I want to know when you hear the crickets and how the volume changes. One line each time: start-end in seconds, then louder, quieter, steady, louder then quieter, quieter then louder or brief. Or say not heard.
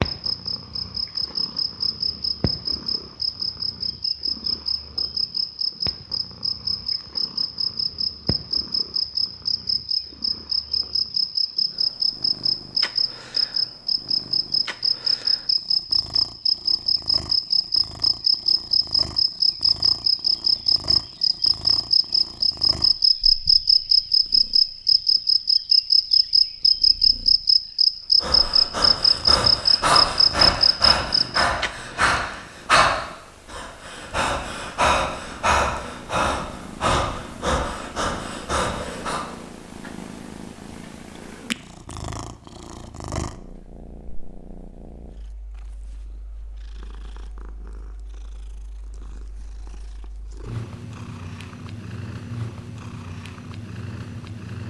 0.0-31.4 louder.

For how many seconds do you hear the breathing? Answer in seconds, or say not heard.
11 s.